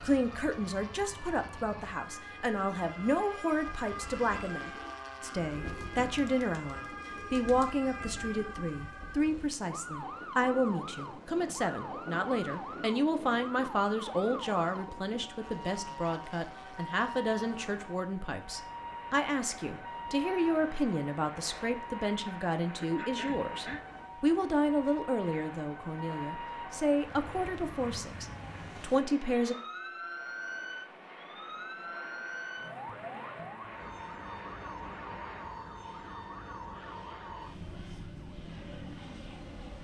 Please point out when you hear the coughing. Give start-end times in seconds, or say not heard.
22.8-23.8.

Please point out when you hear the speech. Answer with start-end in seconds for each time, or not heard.
0.0-29.6.